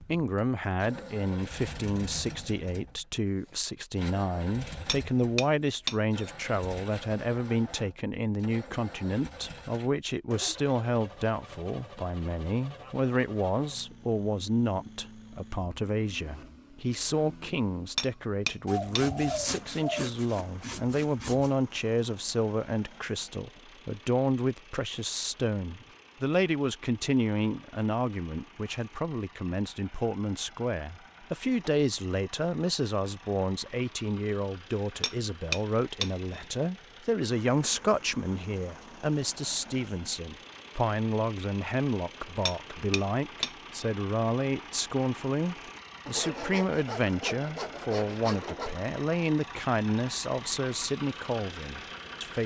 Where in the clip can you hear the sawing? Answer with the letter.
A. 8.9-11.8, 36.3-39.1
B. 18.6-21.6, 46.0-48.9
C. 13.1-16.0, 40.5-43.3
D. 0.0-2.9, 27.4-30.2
B.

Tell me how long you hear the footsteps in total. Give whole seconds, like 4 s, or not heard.
not heard.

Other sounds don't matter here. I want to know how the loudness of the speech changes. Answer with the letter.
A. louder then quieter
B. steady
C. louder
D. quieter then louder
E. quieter
B.